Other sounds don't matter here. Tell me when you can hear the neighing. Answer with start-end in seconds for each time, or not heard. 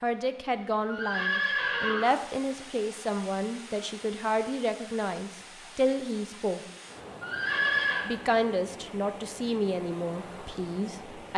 0.8-2.1, 7.2-8.1.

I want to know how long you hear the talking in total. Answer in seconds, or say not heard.
10 s.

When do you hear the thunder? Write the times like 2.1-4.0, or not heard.
not heard.